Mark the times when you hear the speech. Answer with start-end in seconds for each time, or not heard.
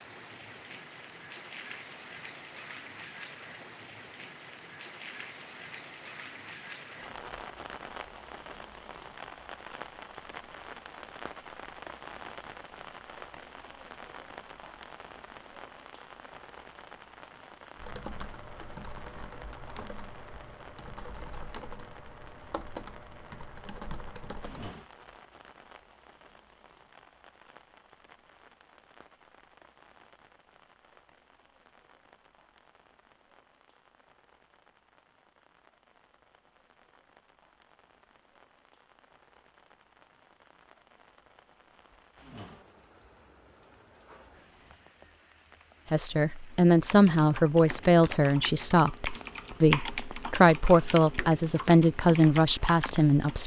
45.9-53.4.